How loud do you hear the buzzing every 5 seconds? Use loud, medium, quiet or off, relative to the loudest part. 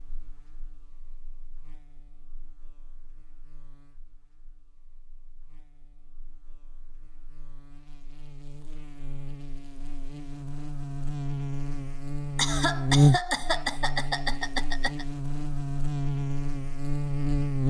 quiet, quiet, loud, loud.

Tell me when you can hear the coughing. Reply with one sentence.
The coughing can be heard from 12.3 to 15.1 s.